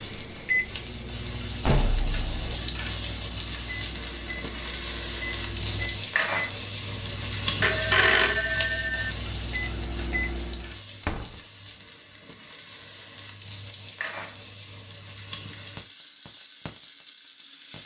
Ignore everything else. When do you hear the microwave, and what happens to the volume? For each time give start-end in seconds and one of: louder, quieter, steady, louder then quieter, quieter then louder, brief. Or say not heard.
0.0-10.8 quieter then louder.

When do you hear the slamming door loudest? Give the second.
2 s.